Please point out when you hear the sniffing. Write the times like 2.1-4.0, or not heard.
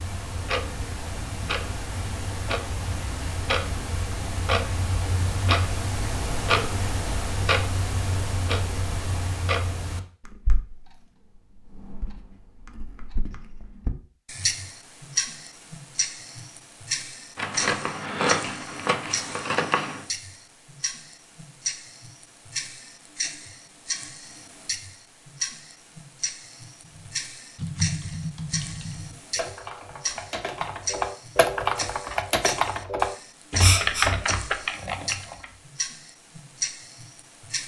33.6-34.1.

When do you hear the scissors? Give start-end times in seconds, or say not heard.
17.4-20.1.